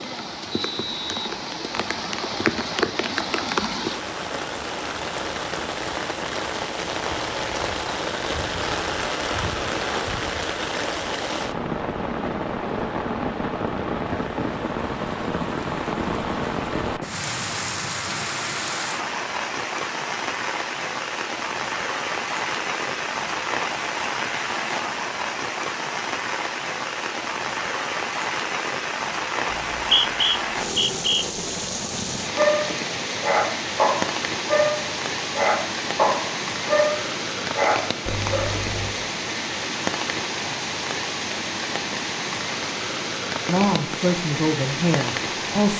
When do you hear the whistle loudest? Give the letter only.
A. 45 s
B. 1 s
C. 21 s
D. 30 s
D.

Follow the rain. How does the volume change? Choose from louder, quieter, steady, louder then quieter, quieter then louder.
steady.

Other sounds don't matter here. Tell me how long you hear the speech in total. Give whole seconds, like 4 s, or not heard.
2 s.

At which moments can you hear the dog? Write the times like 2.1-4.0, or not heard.
32.4-38.9.